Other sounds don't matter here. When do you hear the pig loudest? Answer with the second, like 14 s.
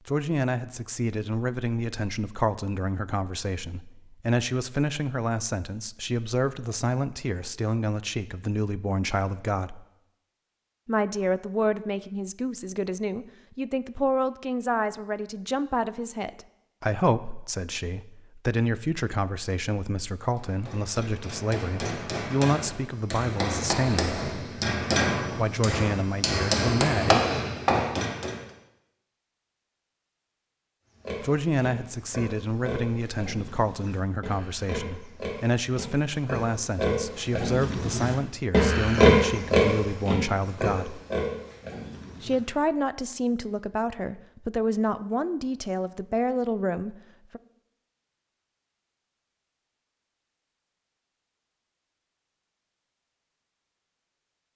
39 s.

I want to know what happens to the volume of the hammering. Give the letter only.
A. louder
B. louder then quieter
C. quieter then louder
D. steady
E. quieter
A.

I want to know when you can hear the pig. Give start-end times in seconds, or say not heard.
31.1-42.5.